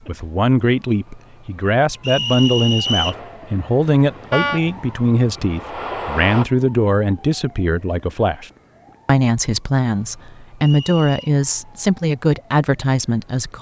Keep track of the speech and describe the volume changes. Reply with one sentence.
The loudness of the speech stays about the same.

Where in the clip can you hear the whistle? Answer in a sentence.
You can hear the whistle from 2.0 to 3.1 s and from 10.6 to 11.3 s.